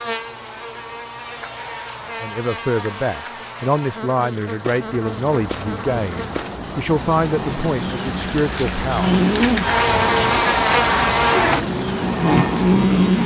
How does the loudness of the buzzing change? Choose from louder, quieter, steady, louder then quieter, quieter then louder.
louder.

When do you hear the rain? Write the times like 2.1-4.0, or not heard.
4.8-13.2.